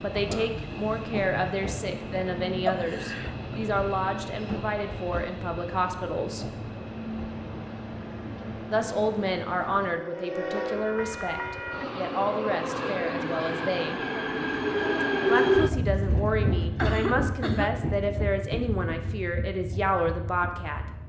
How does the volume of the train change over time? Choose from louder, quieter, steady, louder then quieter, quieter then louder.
louder then quieter.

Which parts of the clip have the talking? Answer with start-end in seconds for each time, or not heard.
0.0-6.5, 8.7-14.0, 15.2-20.9.